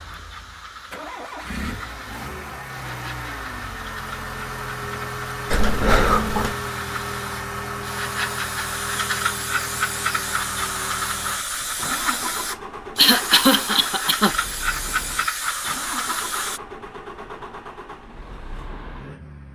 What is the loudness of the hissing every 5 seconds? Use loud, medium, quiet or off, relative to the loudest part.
quiet, loud, loud, loud.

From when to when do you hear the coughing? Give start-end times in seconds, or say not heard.
5.5-6.5, 12.9-14.3.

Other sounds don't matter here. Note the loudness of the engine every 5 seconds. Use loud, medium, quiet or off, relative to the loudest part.
loud, loud, medium, medium.